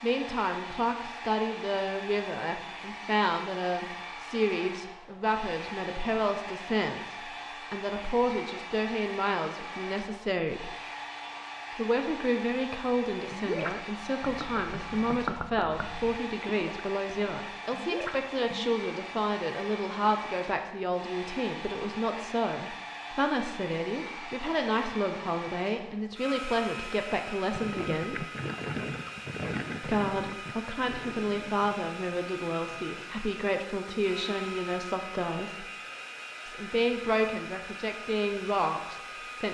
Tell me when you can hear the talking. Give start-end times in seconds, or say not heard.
0.0-10.8, 11.8-28.2, 29.8-35.6, 36.5-39.4.